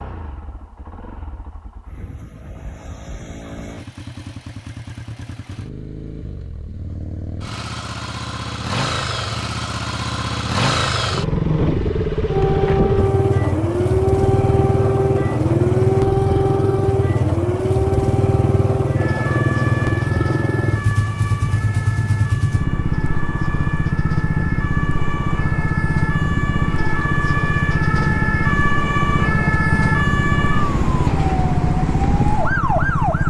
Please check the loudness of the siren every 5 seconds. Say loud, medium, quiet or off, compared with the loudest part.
off, off, loud, loud, medium, loud, loud.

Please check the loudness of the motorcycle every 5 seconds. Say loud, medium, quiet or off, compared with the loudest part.
quiet, medium, loud, loud, loud, loud, loud.